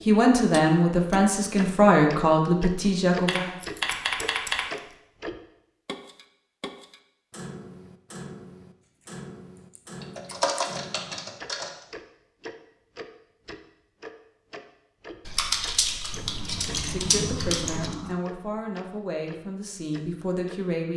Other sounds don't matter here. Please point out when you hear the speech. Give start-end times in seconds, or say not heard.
0.1-3.5, 16.6-20.9.